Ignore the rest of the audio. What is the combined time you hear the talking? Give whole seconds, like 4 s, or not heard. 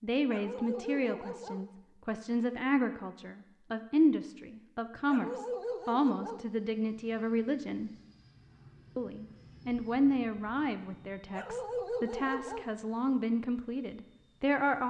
14 s.